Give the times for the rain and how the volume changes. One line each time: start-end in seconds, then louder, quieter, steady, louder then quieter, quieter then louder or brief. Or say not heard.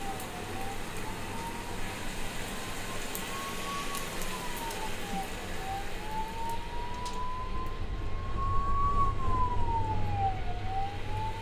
0.0-11.3 quieter.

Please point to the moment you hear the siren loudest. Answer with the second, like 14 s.
9 s.